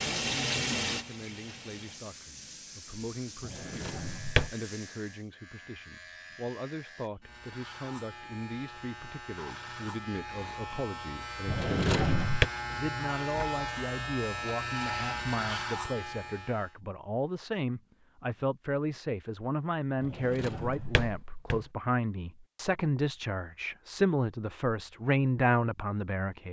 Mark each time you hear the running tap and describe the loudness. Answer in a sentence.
The running tap can be heard from 0.0 to 5.3 s, getting quieter.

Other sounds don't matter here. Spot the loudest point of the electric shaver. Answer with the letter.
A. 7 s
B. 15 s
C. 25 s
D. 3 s
B.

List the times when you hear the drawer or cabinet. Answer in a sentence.
You can hear the drawer or cabinet from 3.4 to 4.5 s, from 11.4 to 12.5 s and from 20.0 to 21.6 s.